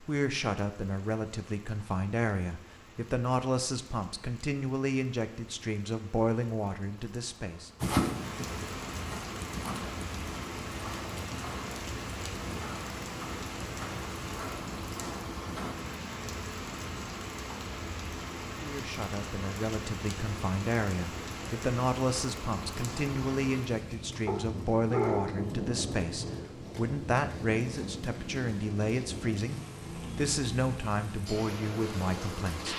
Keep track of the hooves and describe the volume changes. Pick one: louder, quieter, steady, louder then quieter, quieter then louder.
steady.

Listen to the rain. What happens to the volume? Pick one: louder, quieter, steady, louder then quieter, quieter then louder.
louder.